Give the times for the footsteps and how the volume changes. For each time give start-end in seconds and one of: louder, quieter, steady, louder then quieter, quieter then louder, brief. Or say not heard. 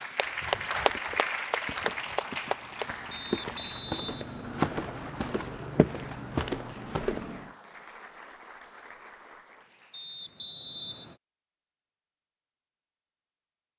0.8-7.5 louder.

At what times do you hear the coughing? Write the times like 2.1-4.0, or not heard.
not heard.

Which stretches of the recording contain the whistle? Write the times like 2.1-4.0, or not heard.
3.1-5.1, 9.9-11.2.